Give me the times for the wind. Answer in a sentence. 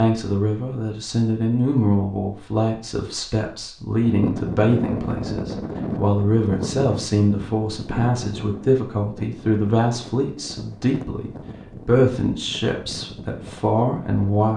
The wind can be heard from 4.0 to 14.4 s.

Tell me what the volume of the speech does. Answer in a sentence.
The volume of the speech stays about the same.